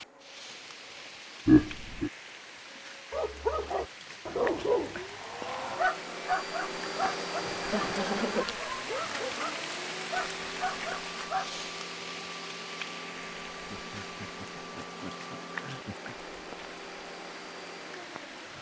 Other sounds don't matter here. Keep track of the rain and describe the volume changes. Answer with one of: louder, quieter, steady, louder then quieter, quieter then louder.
louder then quieter.